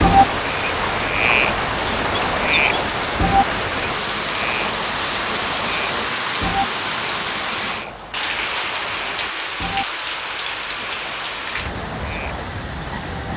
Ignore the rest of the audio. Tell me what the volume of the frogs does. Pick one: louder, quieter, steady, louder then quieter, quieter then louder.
quieter.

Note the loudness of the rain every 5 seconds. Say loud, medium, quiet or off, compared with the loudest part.
loud, loud, medium.